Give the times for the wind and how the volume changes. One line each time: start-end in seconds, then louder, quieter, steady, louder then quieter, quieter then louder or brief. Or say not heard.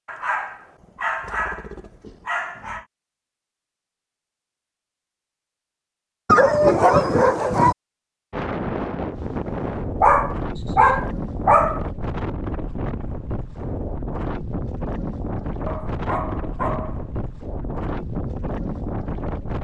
8.3-19.6 steady.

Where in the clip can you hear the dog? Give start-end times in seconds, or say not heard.
0.1-2.9, 6.2-7.8, 10.0-11.8, 15.7-17.1.